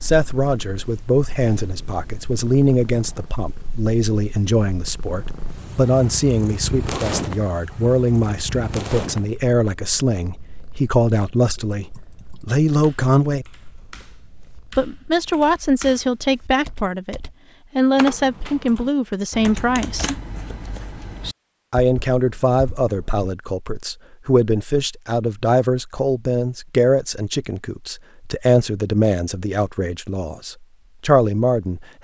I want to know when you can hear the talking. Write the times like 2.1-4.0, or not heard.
0.0-13.4, 14.8-20.1, 21.7-31.9.